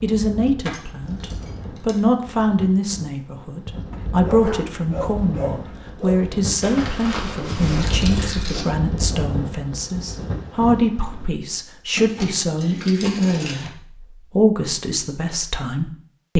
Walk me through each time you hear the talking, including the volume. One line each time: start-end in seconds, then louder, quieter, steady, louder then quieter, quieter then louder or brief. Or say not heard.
0.0-16.3 steady.